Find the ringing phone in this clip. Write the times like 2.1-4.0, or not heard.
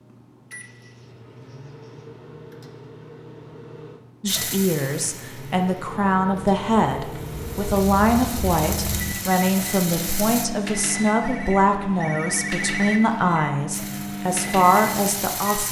11.2-13.0.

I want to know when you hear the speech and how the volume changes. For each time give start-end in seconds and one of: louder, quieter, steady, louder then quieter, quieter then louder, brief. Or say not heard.
4.2-15.6 steady.